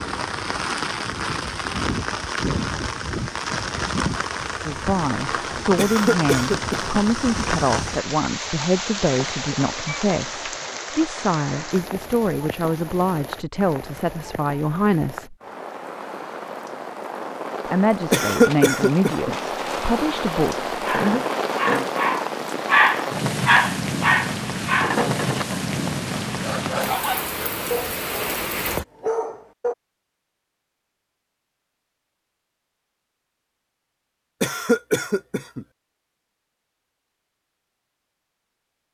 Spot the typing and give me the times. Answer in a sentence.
You can't hear the typing here.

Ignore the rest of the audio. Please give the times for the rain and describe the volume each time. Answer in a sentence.
You can hear the rain from 0.0 to 28.9 s, getting quieter then louder.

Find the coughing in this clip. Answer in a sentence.
The coughing can be heard from 5.8 to 7.0 s, from 18.1 to 19.4 s and from 34.4 to 35.6 s.